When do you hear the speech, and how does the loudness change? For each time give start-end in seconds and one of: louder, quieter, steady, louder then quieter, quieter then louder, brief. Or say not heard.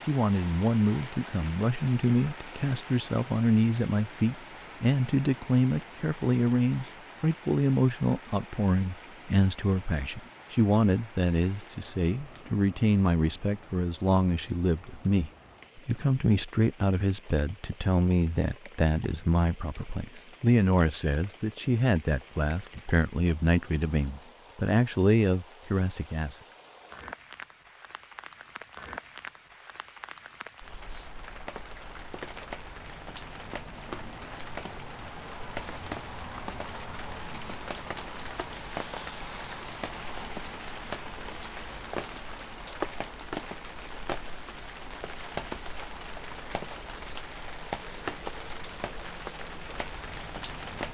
0.1-26.4 steady.